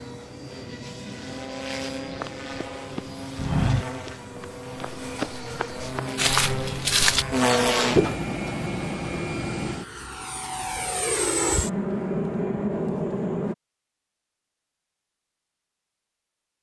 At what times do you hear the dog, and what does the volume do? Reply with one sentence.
You can't hear the dog here.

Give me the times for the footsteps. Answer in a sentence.
You can hear the footsteps from 2.2 to 8.2 s.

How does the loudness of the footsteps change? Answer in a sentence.
The volume of the footsteps goes down, then up.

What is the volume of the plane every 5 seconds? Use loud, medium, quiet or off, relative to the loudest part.
medium, loud, loud, off.